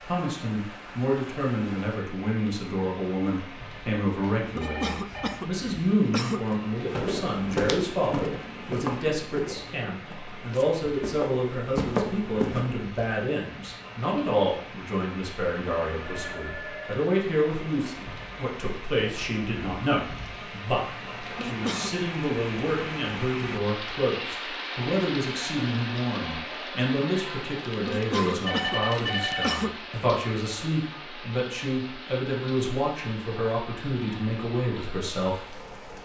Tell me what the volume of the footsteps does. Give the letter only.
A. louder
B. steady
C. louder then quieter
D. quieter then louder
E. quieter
D.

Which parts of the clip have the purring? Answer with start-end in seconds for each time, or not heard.
not heard.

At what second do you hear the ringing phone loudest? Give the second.
29 s.